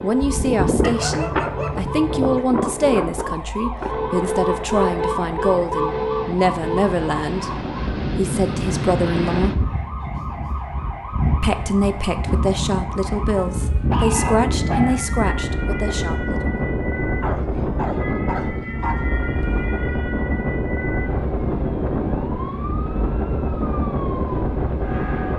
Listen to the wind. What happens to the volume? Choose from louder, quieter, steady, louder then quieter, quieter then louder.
steady.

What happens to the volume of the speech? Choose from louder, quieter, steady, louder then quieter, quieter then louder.
steady.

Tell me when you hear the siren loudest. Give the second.
5 s.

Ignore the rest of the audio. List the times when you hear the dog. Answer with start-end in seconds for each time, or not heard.
0.8-2.4, 13.3-15.0, 17.2-19.5.